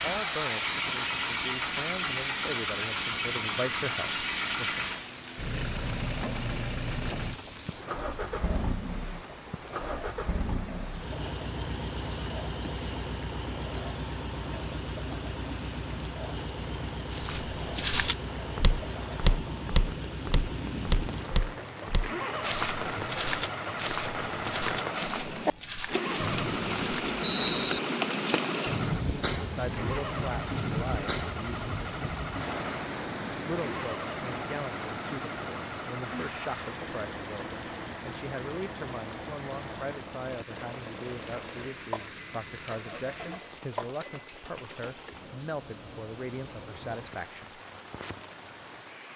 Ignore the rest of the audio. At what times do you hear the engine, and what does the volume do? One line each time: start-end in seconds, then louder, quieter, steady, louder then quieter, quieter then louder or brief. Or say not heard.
0.0-44.4 quieter.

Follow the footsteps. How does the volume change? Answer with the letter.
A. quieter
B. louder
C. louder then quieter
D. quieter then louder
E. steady
A.